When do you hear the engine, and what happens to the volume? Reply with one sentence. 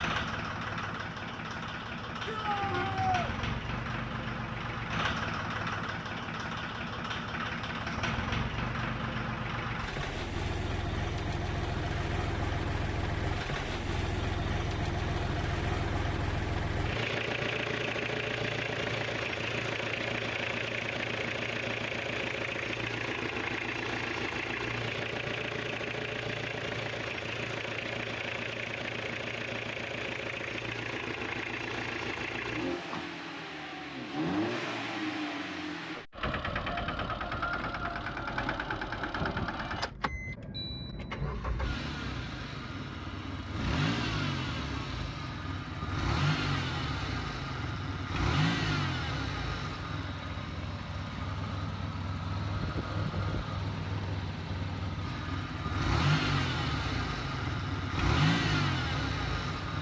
You can hear the engine from 0.0 to 59.7 s, at a steady volume.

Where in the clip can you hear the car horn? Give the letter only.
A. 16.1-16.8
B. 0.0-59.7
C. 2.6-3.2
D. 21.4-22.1
C.